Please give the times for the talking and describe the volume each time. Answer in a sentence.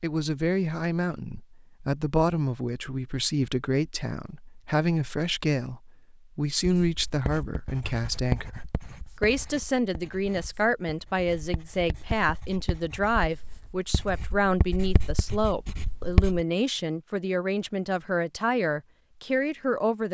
You can hear the talking from 0.0 to 20.0 s, at a steady volume.